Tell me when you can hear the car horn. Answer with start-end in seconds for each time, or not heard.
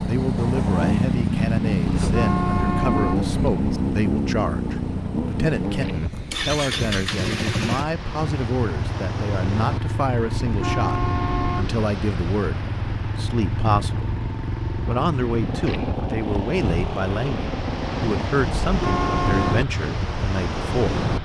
2.0-3.8, 10.4-11.9, 18.5-19.6.